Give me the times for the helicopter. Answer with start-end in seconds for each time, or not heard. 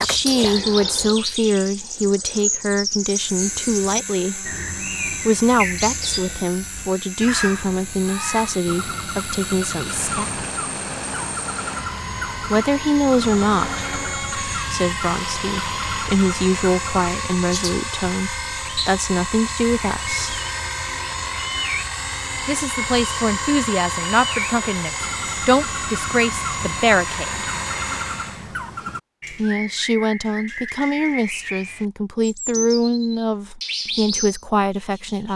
2.9-28.4.